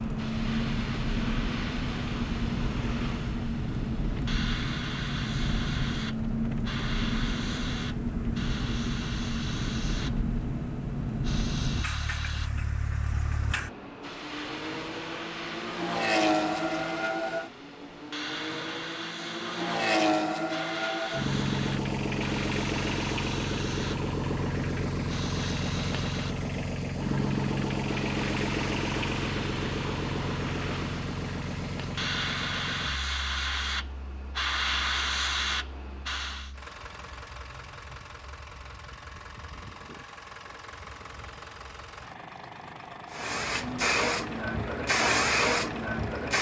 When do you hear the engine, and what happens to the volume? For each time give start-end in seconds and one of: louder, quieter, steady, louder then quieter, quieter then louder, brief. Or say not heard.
0.0-46.3 quieter.